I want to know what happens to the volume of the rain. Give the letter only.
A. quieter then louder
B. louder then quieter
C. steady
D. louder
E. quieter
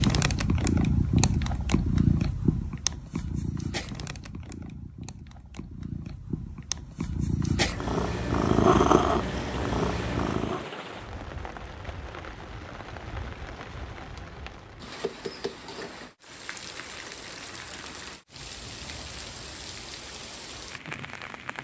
C.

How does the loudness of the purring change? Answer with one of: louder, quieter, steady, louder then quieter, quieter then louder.
quieter then louder.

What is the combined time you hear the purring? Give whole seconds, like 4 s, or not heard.
11 s.